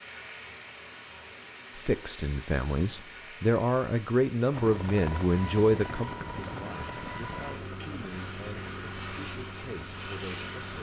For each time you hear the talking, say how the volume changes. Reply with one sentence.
You can hear the talking from 1.8 to 10.7 s, getting quieter.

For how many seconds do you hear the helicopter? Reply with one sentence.
You can hear the helicopter for 6 seconds altogether.